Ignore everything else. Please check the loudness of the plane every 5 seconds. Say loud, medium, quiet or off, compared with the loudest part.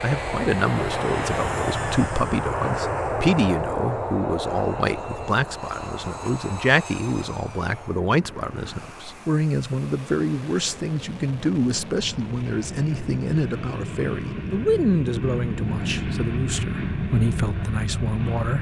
loud, medium, medium, loud.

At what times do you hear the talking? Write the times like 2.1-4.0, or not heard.
0.0-18.5.